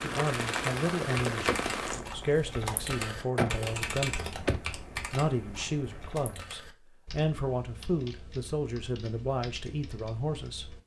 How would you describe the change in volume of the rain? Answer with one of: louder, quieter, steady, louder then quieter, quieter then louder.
quieter.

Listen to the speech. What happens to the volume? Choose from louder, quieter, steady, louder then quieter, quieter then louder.
steady.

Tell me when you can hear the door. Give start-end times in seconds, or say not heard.
3.4-4.6.